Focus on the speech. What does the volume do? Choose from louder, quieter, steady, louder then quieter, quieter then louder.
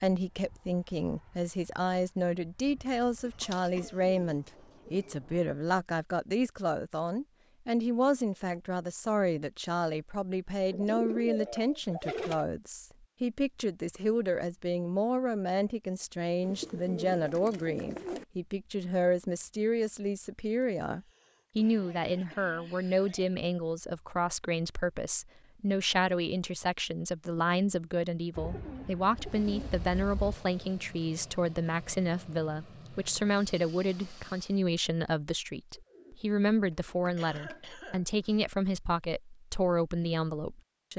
steady.